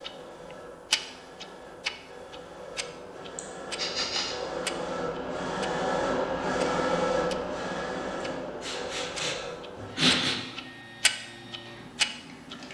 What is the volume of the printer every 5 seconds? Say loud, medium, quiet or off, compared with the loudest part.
medium, loud, quiet.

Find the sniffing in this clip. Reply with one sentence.
You can hear the sniffing from 3.4 to 4.3 s and from 8.2 to 10.3 s.